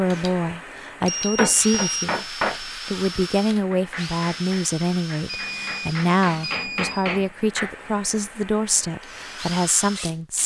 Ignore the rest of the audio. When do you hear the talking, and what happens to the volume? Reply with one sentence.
You can hear the talking from 0.0 to 10.4 s, at a steady volume.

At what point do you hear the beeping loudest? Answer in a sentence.
The loudest moment of the beeping is at 2 seconds.